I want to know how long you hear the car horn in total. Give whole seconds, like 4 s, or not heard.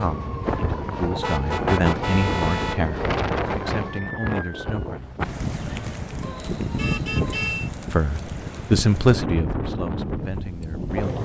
3 s.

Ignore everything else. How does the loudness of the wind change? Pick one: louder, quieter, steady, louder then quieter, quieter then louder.
steady.